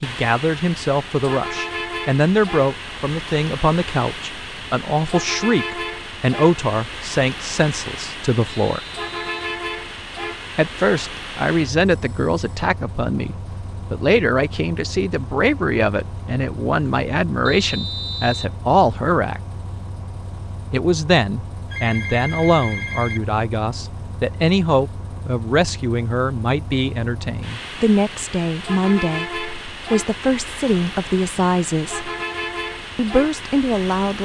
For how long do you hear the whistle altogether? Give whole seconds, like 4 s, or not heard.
2 s.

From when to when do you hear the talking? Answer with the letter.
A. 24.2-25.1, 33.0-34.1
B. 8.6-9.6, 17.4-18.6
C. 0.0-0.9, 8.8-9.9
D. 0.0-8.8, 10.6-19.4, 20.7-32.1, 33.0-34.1
D.